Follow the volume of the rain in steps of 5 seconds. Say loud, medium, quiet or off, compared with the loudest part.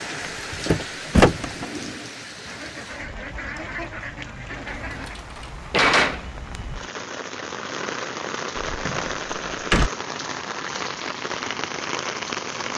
medium, loud, loud.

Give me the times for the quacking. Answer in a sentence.
You can hear the quacking from 2.5 to 5.2 s.